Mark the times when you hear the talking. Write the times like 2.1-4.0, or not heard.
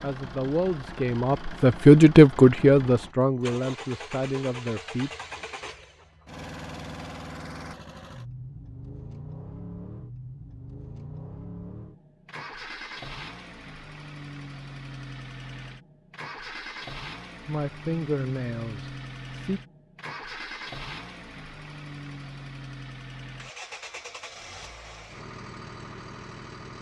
0.0-5.1, 17.4-19.6.